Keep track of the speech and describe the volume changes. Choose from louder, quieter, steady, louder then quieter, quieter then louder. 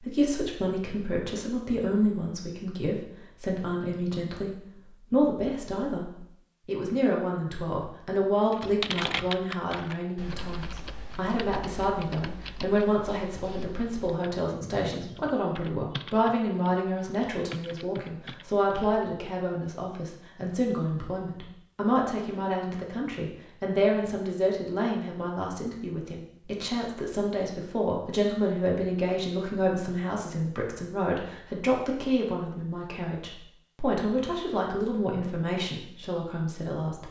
steady.